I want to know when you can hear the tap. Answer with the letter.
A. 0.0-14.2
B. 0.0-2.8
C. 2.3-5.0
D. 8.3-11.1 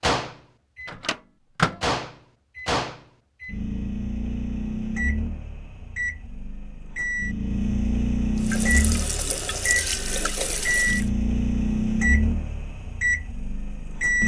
D.